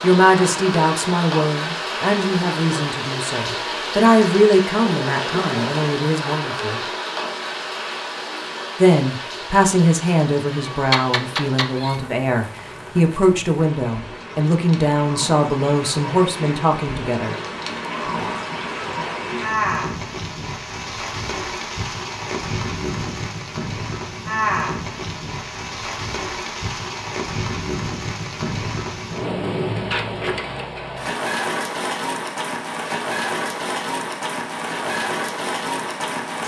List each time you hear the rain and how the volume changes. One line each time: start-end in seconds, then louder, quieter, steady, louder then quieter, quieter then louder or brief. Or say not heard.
0.0-36.4 quieter then louder.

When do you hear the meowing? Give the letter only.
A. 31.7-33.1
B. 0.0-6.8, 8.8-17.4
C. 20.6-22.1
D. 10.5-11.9
D.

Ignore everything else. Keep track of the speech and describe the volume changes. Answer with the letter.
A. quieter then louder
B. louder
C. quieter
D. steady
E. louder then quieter
D.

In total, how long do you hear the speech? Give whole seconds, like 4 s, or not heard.
15 s.